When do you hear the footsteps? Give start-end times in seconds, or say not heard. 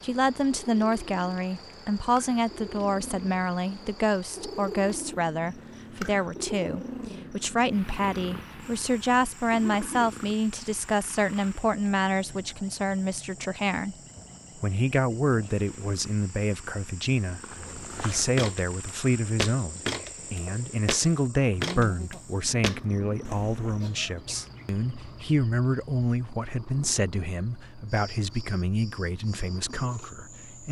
17.4-23.8.